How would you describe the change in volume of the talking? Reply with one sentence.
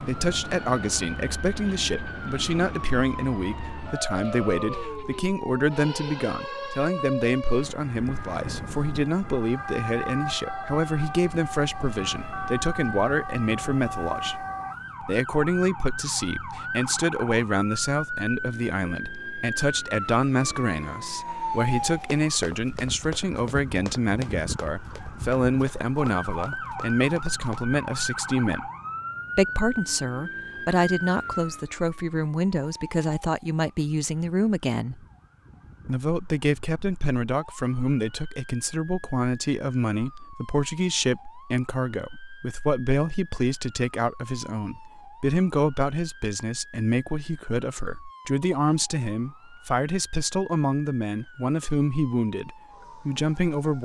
The loudness of the talking stays about the same.